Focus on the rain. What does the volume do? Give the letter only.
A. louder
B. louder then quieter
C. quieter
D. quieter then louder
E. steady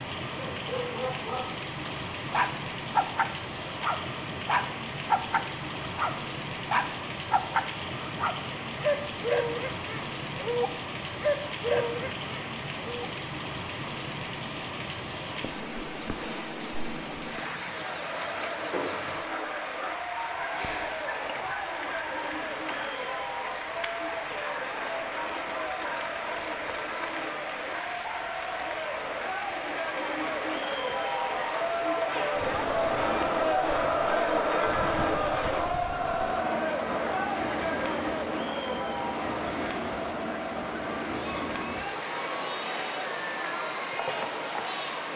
E.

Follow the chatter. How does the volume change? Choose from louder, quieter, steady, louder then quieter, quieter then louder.
louder then quieter.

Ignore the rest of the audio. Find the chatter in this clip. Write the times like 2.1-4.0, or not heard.
17.6-45.1.